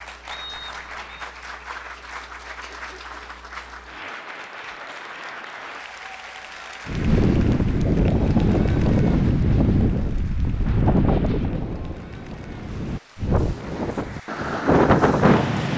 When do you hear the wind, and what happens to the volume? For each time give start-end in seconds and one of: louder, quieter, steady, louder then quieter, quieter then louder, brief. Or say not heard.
6.8-15.7 quieter then louder.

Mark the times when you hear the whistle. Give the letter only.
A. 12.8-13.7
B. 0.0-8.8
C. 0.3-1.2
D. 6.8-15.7
C.